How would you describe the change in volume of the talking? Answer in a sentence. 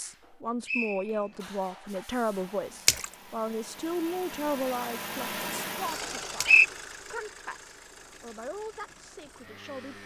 The volume of the talking goes down.